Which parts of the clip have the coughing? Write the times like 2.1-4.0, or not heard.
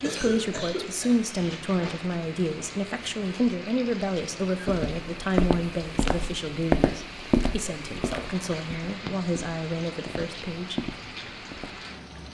0.0-1.9.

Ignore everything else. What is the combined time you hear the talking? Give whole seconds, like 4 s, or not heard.
11 s.